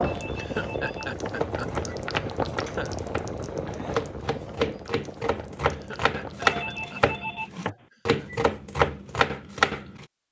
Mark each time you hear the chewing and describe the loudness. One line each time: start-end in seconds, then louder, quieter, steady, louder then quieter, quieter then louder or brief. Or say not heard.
not heard.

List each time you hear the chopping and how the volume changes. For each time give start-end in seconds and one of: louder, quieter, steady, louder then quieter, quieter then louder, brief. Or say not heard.
1.3-10.1 louder.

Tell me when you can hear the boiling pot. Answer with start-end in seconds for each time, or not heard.
0.0-7.0.